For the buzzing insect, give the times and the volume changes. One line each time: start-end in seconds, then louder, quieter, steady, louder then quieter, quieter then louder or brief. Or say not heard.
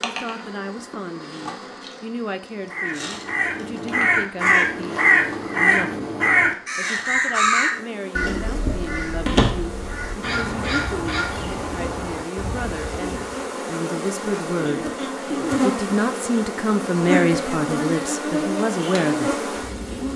0.0-20.1 louder.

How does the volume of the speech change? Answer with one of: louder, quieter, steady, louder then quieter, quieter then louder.
louder.